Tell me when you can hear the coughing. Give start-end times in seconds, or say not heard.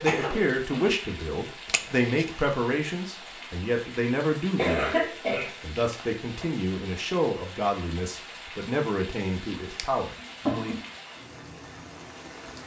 0.1-1.0, 4.5-6.5, 10.2-10.8.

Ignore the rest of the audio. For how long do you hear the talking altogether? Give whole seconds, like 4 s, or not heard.
11 s.